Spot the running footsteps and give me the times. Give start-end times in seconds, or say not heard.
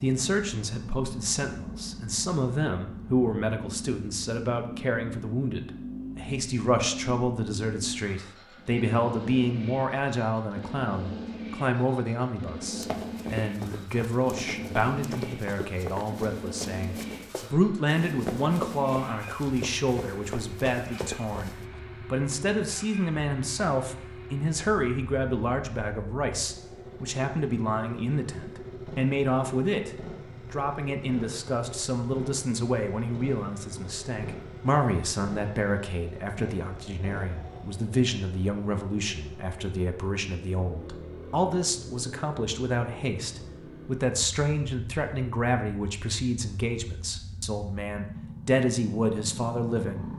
12.6-21.6.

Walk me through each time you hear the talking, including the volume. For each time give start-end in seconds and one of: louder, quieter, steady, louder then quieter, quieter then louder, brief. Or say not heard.
0.0-50.1 steady.